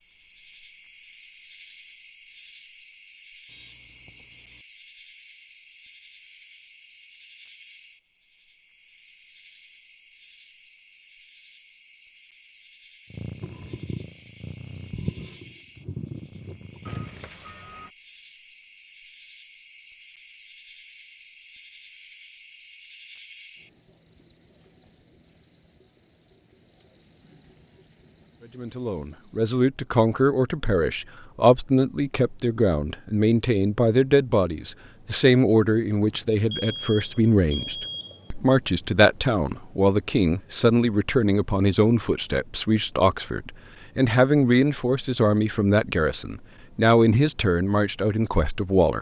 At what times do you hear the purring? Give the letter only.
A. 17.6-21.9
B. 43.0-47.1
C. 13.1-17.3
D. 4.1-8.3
C.